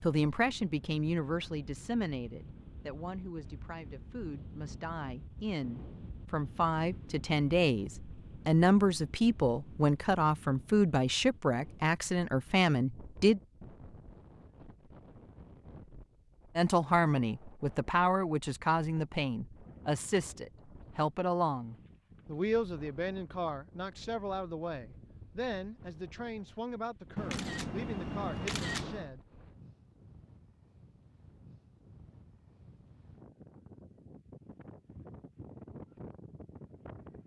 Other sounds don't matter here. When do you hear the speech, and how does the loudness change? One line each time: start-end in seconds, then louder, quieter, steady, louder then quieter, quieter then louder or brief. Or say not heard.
0.0-13.4 quieter then louder
16.6-29.2 quieter.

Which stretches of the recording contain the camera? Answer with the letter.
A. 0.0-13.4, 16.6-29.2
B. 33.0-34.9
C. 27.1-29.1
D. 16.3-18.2
C.